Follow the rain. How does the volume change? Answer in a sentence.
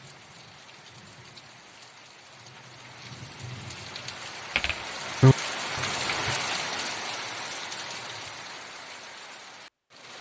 The volume of the rain goes up, then down.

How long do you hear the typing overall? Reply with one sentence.
The typing can be heard for 2 seconds in total.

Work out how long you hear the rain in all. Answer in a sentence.
You can hear the rain for 10 seconds altogether.